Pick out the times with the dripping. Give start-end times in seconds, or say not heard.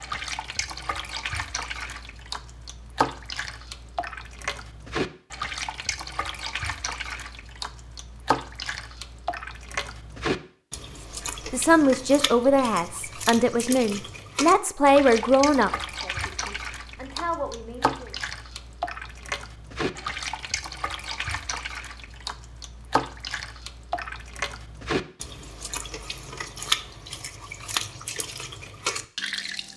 0.0-29.7.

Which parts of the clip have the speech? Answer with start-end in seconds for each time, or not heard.
11.5-18.1.